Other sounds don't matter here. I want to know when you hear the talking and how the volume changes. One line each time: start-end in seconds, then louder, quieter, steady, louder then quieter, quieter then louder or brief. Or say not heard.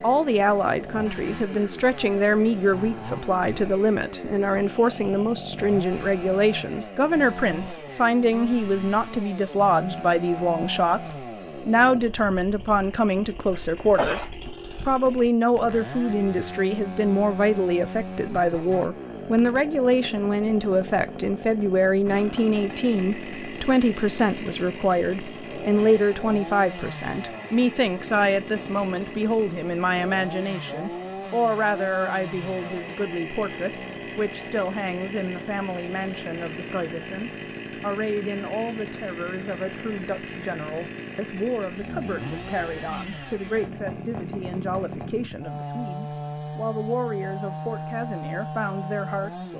0.0-49.5 quieter.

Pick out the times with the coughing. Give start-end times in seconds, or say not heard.
13.5-14.3.